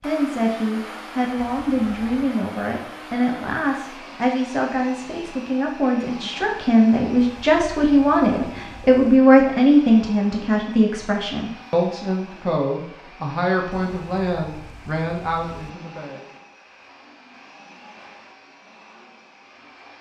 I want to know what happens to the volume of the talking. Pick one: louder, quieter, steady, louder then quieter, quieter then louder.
louder then quieter.